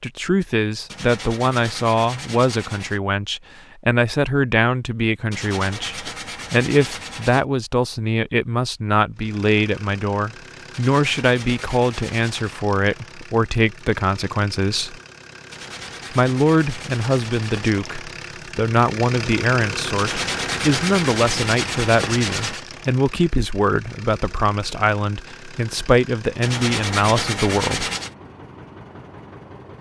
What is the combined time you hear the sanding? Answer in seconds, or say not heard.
13 s.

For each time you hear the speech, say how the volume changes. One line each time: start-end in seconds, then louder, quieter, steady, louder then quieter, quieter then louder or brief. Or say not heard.
0.0-14.9 steady
16.1-27.9 steady.